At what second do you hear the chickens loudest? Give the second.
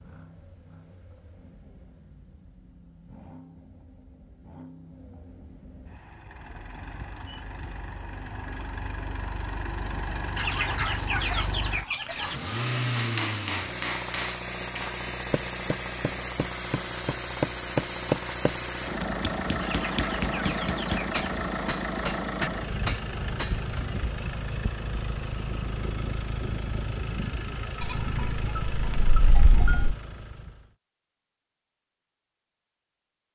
11 s.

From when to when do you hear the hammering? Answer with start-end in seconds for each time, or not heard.
12.9-23.8.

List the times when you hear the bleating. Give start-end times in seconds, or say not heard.
27.8-29.9.